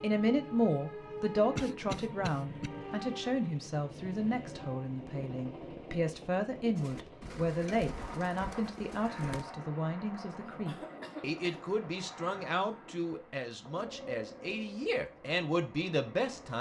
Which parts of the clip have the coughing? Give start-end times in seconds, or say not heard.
1.6-2.7, 10.4-11.7.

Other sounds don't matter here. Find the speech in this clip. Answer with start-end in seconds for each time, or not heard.
0.0-16.5.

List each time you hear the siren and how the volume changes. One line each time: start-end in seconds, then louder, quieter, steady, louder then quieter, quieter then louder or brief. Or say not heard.
not heard.